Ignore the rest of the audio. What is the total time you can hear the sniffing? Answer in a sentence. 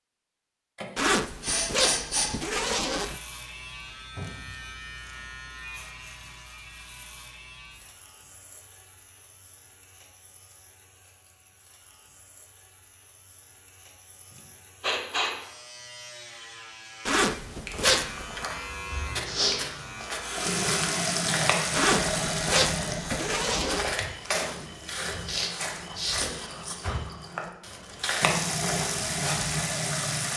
You can hear the sniffing for 4 seconds altogether.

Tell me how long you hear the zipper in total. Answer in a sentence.
The zipper can be heard for 6 seconds in total.